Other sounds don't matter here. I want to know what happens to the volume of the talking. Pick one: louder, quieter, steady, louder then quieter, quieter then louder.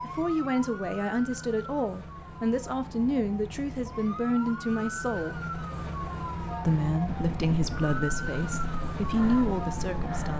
steady.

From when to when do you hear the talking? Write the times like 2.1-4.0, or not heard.
0.0-5.3, 6.7-10.3.